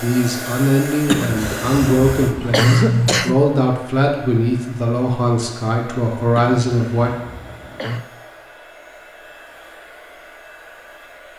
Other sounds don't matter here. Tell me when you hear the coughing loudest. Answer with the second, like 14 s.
3 s.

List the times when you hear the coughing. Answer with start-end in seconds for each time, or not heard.
1.1-3.4, 6.3-8.1.